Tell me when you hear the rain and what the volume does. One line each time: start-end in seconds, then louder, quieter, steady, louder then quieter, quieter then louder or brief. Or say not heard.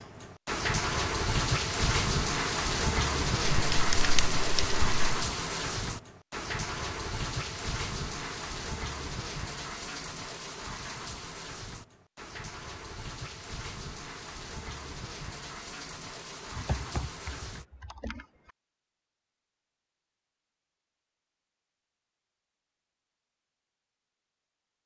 0.0-17.6 quieter.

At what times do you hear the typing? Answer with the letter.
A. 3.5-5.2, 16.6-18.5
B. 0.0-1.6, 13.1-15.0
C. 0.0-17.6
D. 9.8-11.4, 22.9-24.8
A.